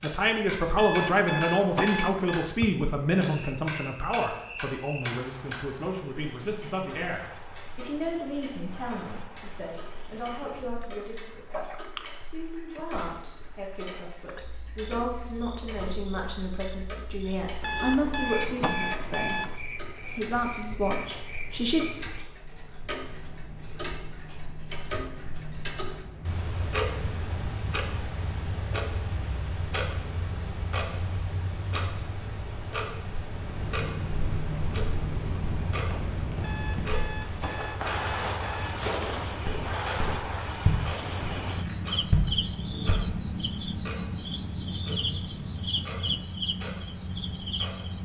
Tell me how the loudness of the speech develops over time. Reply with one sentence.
The loudness of the speech goes down, then up.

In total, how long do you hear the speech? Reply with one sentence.
You can hear the speech for 22 seconds altogether.